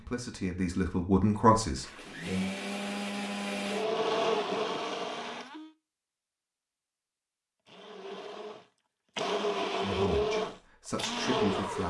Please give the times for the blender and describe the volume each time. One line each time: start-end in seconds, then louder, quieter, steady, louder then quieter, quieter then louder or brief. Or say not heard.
1.8-5.8 louder then quieter
7.7-11.8 louder.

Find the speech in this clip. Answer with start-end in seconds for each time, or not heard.
0.0-2.5, 9.8-11.8.